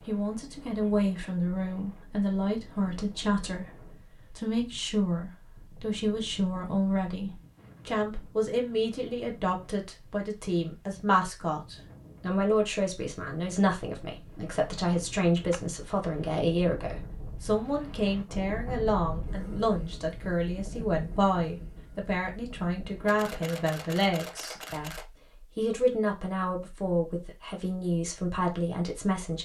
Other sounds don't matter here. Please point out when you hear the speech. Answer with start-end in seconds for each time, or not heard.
0.1-29.4.